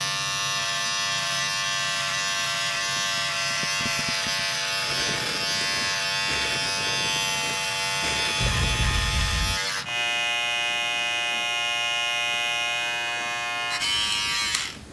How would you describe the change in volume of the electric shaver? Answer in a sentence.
The loudness of the electric shaver stays about the same.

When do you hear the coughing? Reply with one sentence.
You can hear the coughing from 8.4 to 9.6 s.